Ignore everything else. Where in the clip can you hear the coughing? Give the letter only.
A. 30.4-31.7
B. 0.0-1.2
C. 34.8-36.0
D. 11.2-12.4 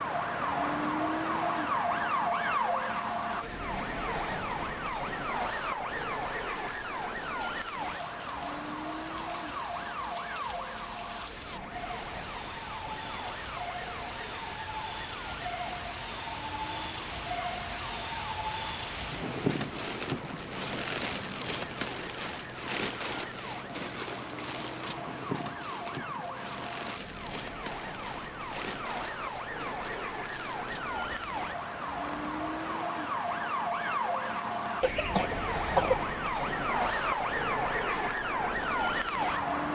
C.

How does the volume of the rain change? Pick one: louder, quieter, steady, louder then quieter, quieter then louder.
louder then quieter.